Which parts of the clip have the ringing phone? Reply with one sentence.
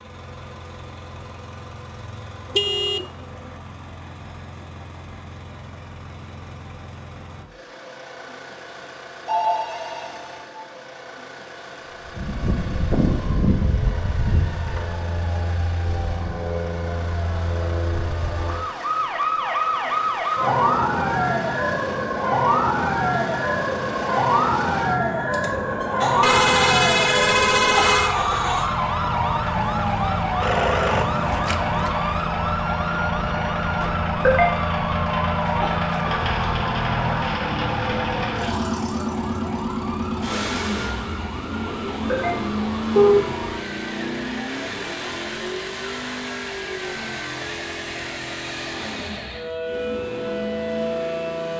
You can hear the ringing phone from 9.2 to 10.7 s and from 30.4 to 31.9 s.